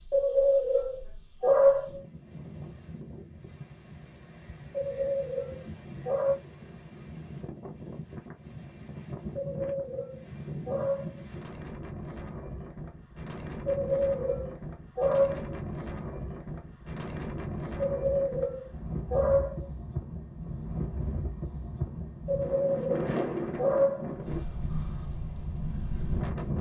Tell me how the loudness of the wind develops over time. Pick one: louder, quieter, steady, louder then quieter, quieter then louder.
louder.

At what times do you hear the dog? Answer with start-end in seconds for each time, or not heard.
0.1-2.0, 4.7-6.3, 9.3-11.2, 13.7-15.6, 17.8-19.6, 22.2-24.1.